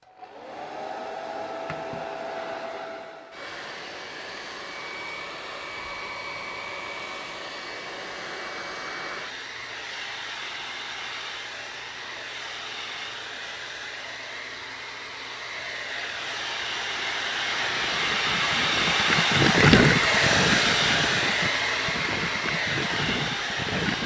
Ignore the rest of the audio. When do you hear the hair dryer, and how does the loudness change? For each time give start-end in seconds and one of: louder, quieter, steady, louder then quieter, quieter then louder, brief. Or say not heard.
0.0-24.0 louder.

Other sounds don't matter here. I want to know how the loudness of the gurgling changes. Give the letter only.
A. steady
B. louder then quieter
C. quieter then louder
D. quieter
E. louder
B.